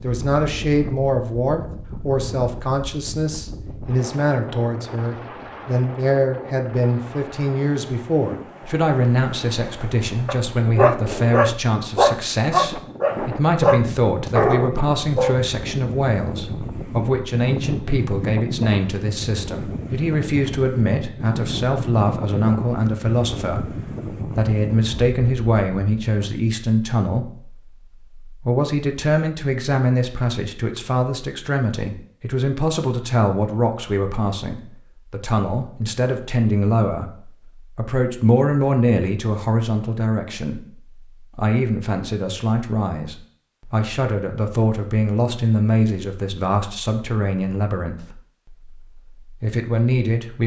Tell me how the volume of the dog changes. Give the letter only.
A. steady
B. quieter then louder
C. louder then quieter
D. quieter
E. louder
A.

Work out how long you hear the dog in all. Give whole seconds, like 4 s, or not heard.
5 s.